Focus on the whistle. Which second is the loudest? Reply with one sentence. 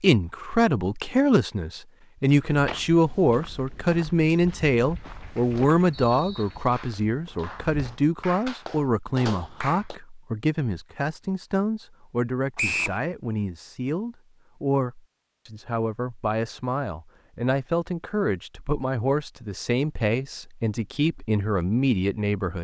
The loudest moment of the whistle is at 13 seconds.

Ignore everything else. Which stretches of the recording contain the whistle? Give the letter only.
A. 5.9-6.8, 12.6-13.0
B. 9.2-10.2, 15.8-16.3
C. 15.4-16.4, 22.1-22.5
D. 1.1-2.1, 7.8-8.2
A.